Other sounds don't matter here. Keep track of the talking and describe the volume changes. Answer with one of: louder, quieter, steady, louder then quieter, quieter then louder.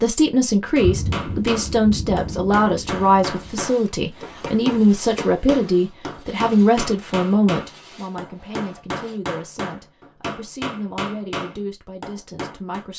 quieter.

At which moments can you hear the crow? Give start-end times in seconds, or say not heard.
not heard.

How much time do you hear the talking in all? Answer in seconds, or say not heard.
13 s.